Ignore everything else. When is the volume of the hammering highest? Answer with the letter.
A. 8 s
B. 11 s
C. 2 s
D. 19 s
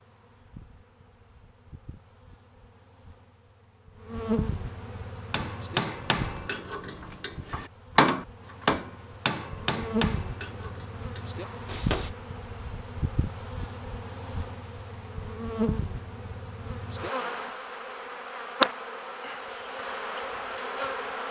A.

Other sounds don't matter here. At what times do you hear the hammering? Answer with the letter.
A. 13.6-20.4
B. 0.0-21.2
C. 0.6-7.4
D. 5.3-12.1
D.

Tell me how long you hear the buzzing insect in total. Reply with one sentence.
The buzzing insect can be heard for 21 seconds in total.